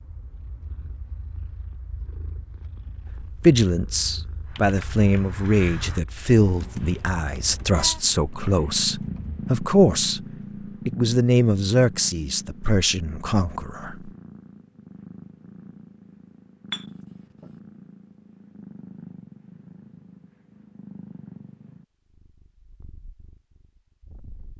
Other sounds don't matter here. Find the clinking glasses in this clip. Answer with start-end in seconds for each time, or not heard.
16.7-17.5.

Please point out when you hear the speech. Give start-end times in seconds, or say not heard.
3.2-10.2, 10.8-14.1.